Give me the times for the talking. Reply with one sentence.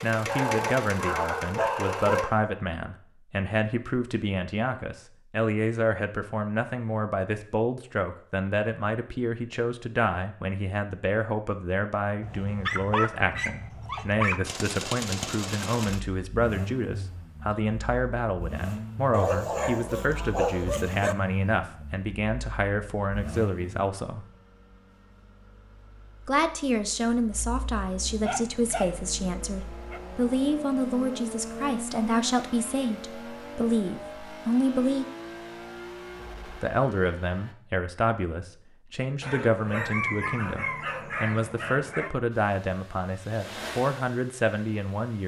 The talking can be heard from 0.0 to 24.2 s, from 26.2 to 35.0 s and from 36.5 to 45.2 s.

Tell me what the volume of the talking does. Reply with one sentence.
The loudness of the talking stays about the same.